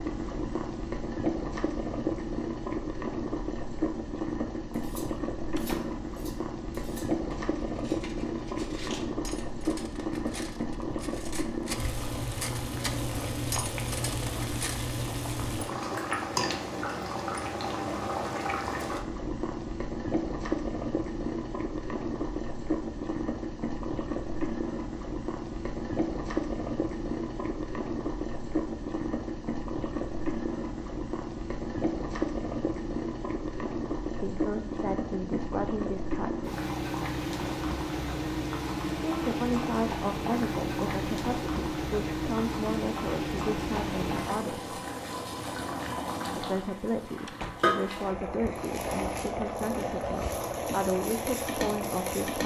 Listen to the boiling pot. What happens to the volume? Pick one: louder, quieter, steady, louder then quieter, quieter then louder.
steady.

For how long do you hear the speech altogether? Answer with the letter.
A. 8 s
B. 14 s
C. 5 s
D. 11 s
B.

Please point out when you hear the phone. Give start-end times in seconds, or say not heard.
not heard.